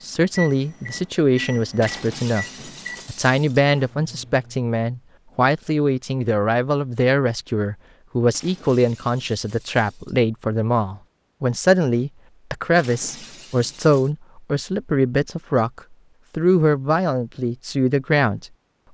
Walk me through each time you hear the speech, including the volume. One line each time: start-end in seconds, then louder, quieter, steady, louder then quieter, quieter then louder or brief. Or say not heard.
0.0-2.5 brief
3.0-18.9 steady.